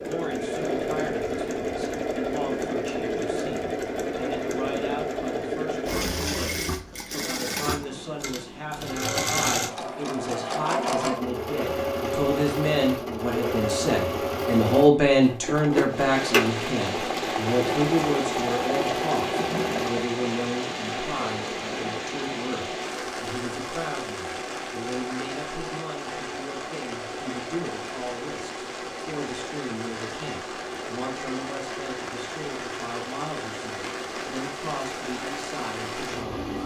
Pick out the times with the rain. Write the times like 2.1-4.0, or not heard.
15.8-36.6.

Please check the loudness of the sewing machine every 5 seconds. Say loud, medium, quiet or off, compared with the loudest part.
loud, loud, loud, loud, medium, medium, medium, medium.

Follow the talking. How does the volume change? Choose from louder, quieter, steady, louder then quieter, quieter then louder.
louder then quieter.